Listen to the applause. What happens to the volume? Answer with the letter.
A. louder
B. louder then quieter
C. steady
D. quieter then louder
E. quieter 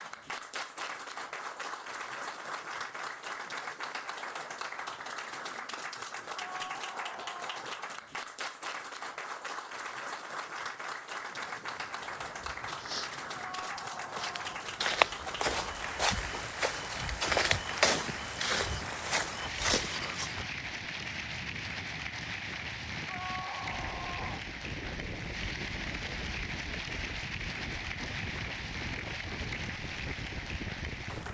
C.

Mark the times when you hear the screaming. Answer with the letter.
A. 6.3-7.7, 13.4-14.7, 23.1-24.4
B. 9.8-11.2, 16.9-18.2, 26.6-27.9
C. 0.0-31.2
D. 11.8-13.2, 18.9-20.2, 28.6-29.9
A.